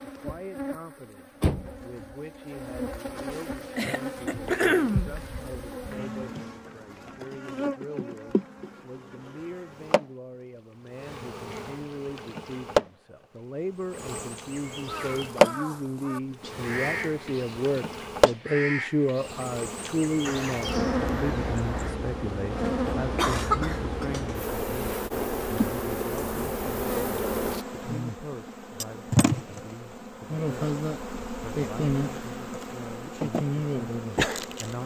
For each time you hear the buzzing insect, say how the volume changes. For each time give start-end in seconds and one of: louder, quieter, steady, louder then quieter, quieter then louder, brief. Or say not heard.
0.0-34.8 louder.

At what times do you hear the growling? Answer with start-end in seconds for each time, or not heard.
not heard.